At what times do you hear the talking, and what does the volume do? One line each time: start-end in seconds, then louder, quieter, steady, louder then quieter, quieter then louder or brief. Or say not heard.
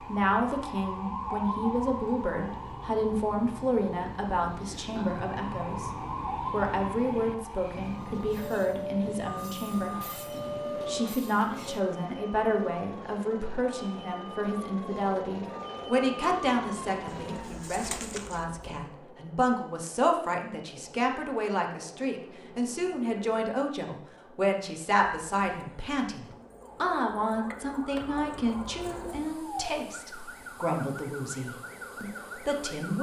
0.0-32.9 steady.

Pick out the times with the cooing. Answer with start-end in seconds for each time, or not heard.
17.1-18.4.